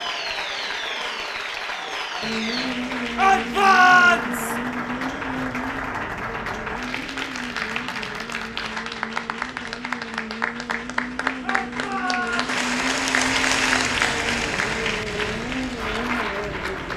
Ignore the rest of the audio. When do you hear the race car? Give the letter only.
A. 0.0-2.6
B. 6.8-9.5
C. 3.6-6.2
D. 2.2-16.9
D.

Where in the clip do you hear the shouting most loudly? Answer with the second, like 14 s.
4 s.